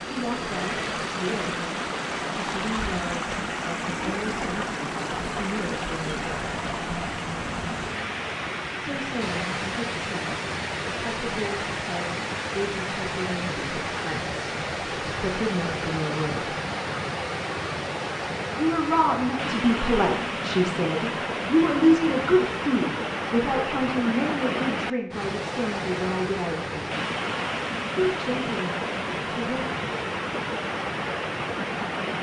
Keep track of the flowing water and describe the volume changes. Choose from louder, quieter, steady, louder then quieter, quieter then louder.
steady.